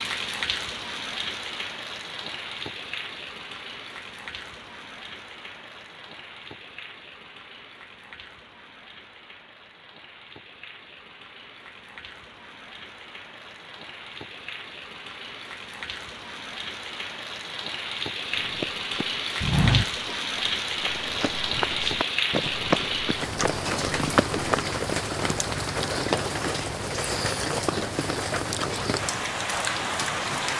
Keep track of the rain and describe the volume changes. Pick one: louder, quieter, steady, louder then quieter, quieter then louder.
quieter then louder.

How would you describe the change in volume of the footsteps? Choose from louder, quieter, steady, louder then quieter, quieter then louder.
quieter then louder.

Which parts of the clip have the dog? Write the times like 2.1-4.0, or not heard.
not heard.